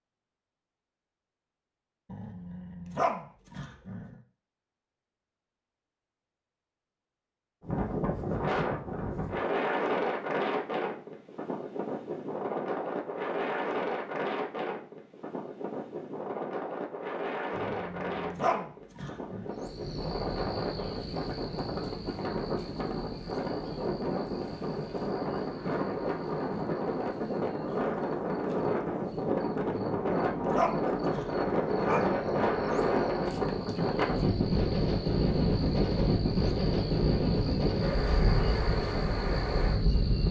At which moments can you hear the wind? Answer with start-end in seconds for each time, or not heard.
7.6-40.2.